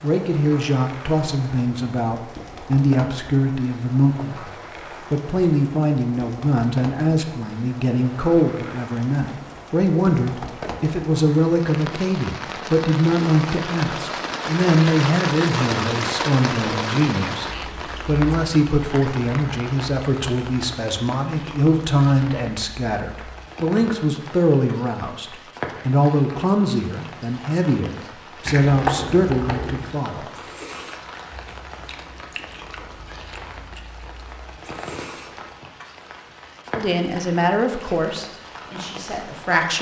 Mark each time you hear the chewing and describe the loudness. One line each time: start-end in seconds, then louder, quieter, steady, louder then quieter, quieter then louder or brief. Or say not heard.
28.4-35.5 quieter then louder.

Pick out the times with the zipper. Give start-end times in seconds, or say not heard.
not heard.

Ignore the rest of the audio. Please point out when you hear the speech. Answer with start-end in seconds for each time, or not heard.
0.0-30.3, 36.7-39.7.